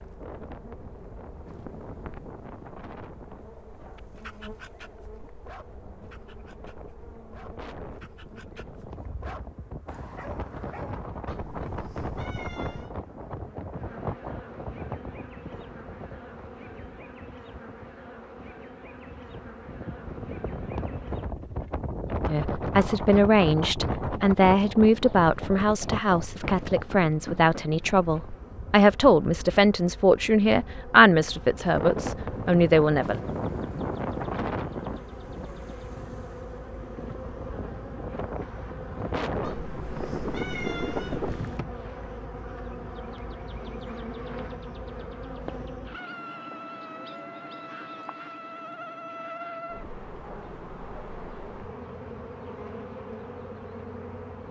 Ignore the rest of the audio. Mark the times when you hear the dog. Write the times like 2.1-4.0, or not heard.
3.8-11.0.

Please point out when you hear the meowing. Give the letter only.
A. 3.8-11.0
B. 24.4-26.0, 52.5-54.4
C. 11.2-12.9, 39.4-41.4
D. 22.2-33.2
C.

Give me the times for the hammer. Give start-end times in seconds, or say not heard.
not heard.